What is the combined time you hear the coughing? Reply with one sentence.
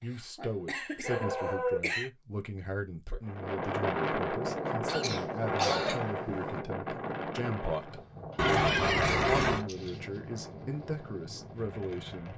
The coughing can be heard for 4 seconds in total.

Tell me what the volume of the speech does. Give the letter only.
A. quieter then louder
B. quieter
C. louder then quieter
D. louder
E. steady
E.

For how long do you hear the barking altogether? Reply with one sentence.
The barking can be heard for 4 seconds in total.